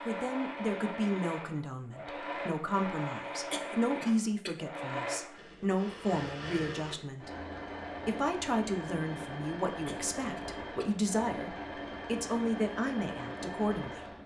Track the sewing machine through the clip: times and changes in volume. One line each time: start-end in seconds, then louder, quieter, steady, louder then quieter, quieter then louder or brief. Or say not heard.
0.0-14.2 steady.